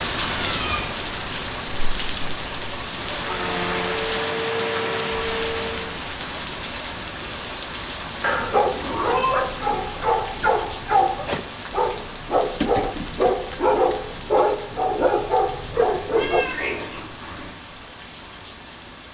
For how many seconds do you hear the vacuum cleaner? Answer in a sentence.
The vacuum cleaner can be heard for 3 seconds in total.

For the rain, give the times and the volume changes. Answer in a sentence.
You can hear the rain from 0.0 to 19.0 s, getting quieter.